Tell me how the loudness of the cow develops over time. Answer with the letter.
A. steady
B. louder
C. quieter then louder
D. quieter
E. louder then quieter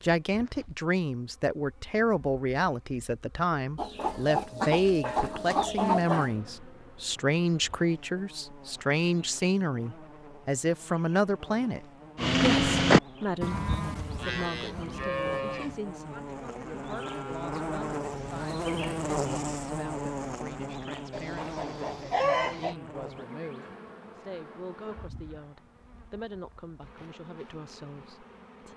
D.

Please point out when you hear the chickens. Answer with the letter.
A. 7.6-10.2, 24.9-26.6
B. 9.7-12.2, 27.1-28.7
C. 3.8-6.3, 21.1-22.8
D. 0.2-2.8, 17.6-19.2
C.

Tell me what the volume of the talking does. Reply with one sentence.
The volume of the talking goes down.